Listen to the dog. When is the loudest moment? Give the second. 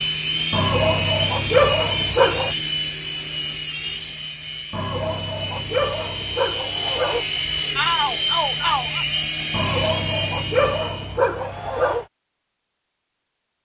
2 s.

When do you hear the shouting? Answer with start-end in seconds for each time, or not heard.
7.8-9.1.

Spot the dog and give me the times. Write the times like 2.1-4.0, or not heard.
0.5-2.5, 4.7-7.2, 9.5-12.1.